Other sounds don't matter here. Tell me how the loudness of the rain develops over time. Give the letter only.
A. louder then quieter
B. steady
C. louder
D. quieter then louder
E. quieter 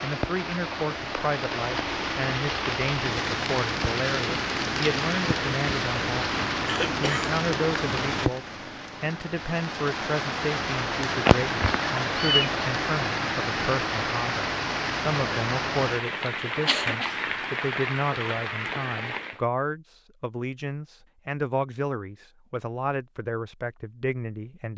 B.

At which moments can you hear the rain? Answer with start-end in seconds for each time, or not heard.
0.0-19.4.